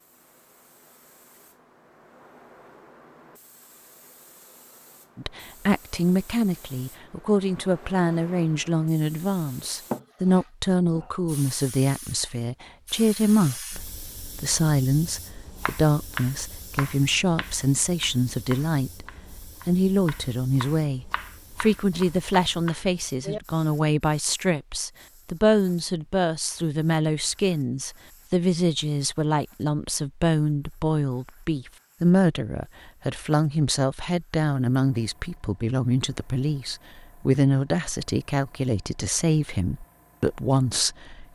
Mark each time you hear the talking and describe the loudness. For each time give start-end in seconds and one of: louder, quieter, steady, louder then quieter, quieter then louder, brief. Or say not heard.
5.2-19.1 steady
19.6-41.2 steady.